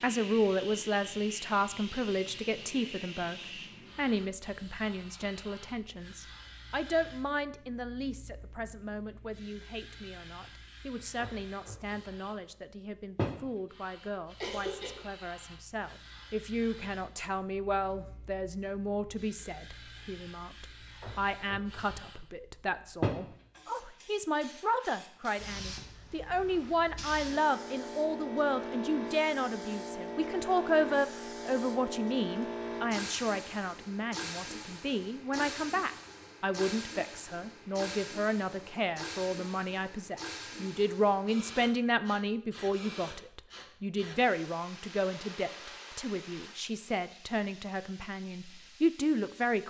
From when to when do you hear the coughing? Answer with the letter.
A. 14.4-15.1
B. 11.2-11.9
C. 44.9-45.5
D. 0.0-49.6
A.